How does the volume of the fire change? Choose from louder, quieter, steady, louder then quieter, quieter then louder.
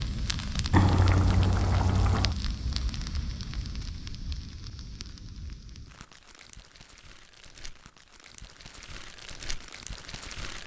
quieter then louder.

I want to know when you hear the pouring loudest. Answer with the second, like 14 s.
1 s.